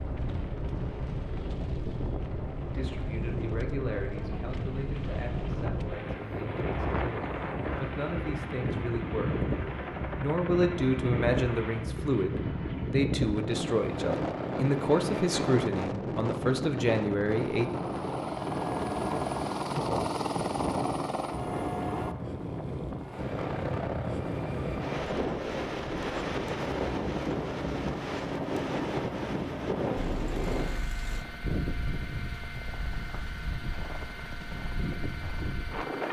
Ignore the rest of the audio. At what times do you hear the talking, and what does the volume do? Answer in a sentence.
You can hear the talking from 2.6 to 17.7 s, getting louder.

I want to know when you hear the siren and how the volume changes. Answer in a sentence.
The siren can't be heard in this clip.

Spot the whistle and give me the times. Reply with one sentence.
The whistle can't be heard in this clip.